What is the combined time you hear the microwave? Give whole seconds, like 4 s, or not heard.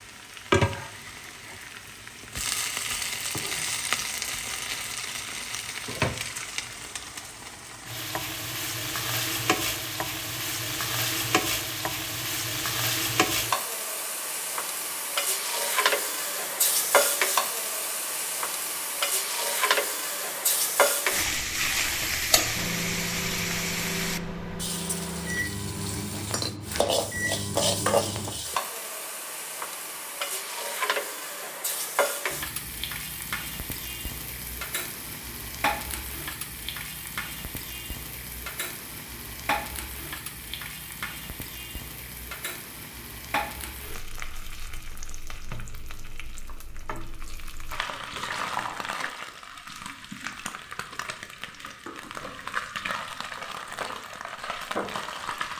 6 s.